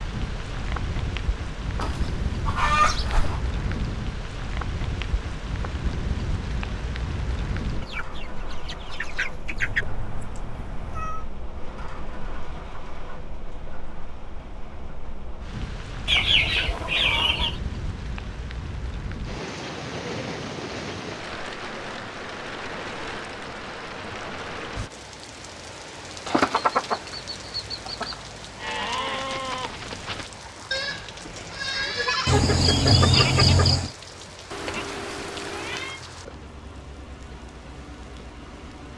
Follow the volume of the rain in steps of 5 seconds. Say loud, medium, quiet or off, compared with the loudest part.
loud, loud, medium, loud, loud, medium, medium, medium.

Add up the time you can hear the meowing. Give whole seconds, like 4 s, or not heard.
3 s.